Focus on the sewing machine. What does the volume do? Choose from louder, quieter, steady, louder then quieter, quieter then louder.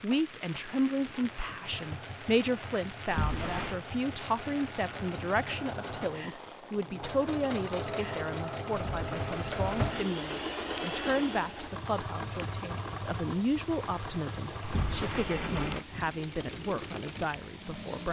louder then quieter.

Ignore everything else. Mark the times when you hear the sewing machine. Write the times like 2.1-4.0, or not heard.
0.0-18.0.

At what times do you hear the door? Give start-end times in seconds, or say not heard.
3.0-3.8, 8.7-10.1, 14.6-15.8.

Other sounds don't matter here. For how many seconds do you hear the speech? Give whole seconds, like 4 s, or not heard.
18 s.